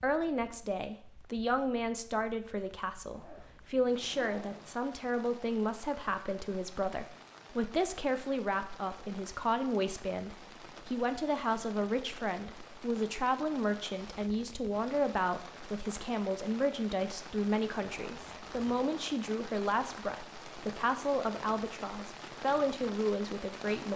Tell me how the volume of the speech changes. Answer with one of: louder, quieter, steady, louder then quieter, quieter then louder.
steady.